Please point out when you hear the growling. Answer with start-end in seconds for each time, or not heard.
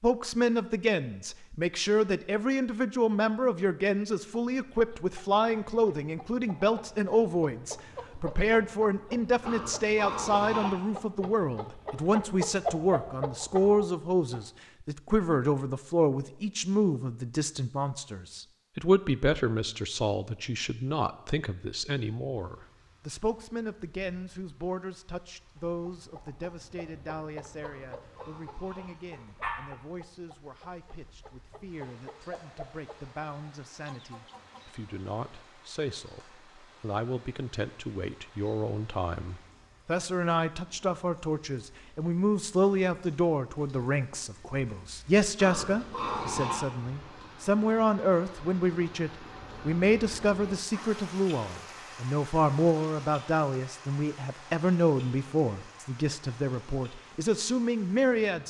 9.4-10.8, 27.6-29.5, 45.4-46.7.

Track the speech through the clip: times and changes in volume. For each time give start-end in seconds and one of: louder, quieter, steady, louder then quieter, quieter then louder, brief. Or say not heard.
0.0-58.4 quieter then louder.